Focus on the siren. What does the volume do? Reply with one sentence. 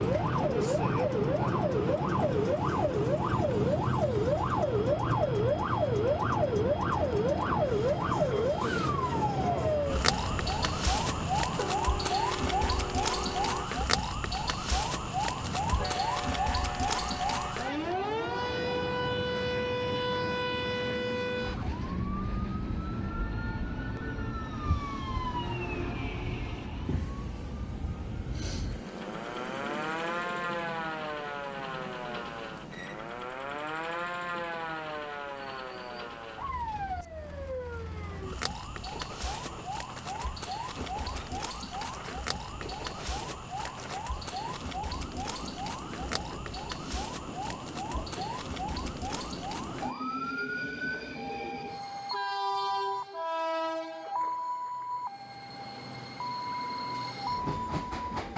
The loudness of the siren goes down.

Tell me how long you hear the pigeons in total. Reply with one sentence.
The pigeons can't be heard in this clip.